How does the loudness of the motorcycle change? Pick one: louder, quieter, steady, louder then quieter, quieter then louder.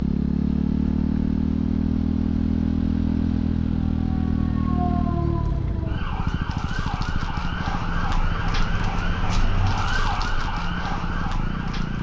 quieter.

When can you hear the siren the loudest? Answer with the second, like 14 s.
10 s.